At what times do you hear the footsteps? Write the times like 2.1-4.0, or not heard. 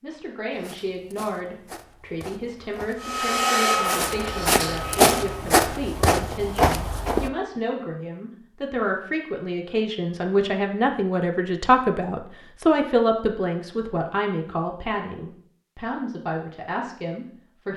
0.5-7.3.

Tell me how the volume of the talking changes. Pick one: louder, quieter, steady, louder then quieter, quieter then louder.
louder then quieter.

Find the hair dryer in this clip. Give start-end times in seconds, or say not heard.
3.0-5.5.